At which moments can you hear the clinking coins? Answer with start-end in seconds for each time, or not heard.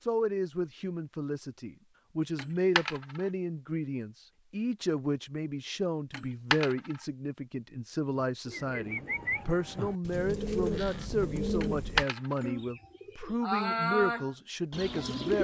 2.4-3.2, 6.1-7.0, 11.6-12.4.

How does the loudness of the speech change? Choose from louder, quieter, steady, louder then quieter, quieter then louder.
steady.